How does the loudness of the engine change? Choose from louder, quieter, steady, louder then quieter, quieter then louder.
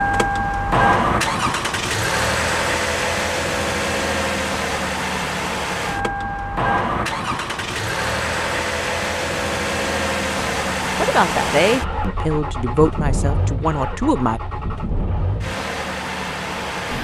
quieter.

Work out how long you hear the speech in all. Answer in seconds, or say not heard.
4 s.